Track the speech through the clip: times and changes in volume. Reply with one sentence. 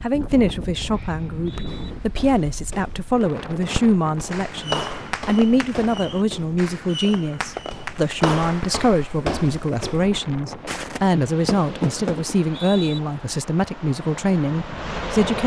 The speech can be heard from 0.0 to 15.4 s, at a steady volume.